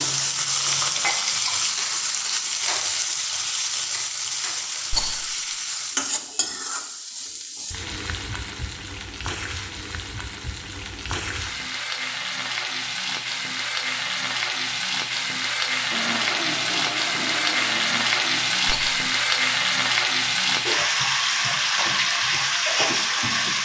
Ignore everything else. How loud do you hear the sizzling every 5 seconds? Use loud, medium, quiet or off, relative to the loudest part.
loud, medium, medium, loud, loud.